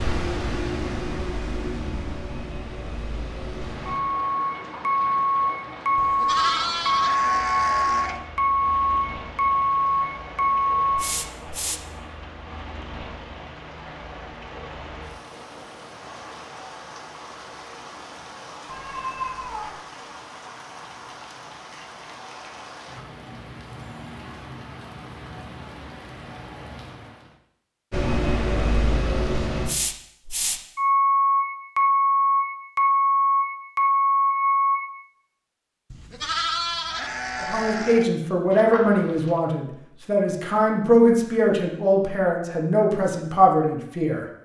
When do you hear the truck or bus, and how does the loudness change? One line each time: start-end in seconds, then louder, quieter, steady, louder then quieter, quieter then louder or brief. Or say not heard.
0.0-11.8 louder
27.9-34.8 louder.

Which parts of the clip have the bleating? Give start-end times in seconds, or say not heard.
6.0-8.2, 35.9-38.1.